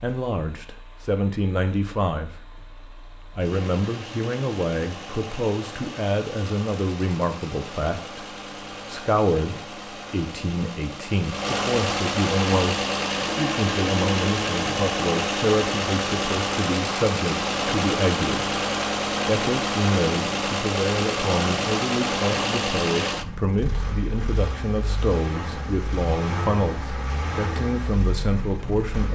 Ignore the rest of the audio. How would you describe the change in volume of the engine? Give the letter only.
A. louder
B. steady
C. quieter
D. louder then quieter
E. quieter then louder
D.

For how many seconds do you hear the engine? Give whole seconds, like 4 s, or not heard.
29 s.